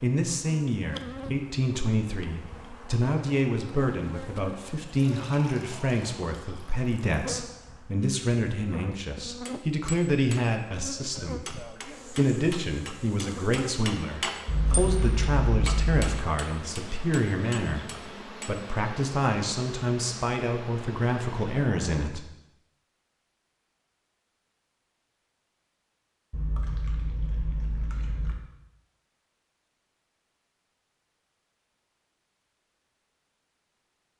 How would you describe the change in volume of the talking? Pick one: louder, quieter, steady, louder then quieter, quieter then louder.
steady.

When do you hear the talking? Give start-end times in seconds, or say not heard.
0.0-22.2.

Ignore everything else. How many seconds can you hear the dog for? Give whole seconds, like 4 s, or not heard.
not heard.